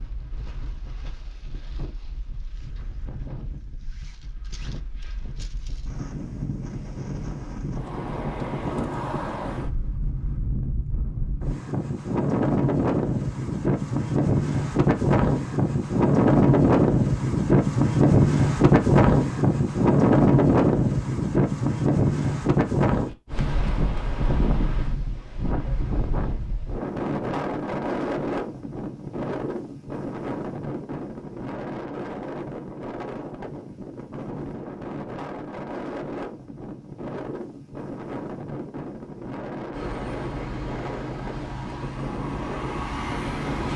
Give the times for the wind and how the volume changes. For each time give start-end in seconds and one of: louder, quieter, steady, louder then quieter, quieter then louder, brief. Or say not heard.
0.0-43.7 louder then quieter.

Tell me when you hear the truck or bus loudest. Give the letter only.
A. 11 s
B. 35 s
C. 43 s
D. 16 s
C.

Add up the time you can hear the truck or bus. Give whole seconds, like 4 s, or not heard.
4 s.